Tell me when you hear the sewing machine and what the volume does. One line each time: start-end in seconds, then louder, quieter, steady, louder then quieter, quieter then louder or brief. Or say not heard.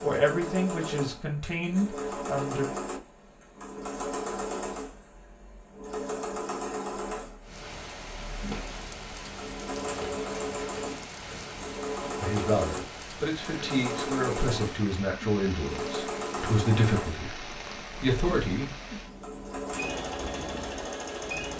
0.0-21.5 steady.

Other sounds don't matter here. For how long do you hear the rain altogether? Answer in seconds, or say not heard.
14 s.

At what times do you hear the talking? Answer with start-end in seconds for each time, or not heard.
0.0-2.6, 12.2-18.8.